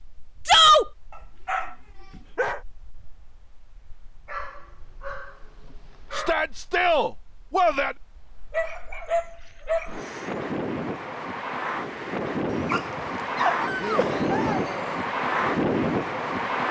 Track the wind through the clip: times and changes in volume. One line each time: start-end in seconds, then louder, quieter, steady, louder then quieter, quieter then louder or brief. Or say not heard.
0.0-16.6 louder.